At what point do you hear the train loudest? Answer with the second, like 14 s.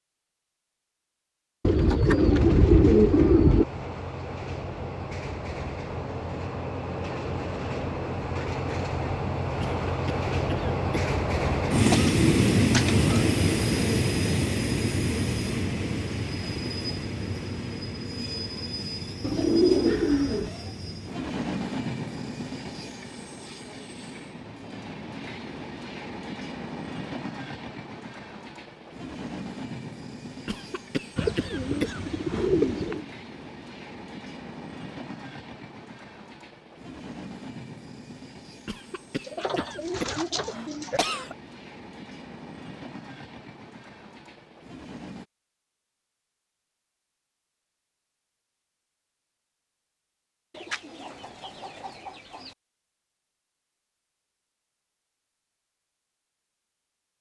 12 s.